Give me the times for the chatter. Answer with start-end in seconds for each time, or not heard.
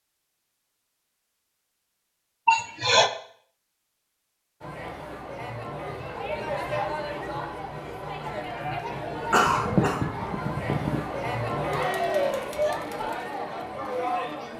4.6-14.5.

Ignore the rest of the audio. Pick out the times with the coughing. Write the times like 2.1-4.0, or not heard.
2.5-3.1, 9.3-11.0.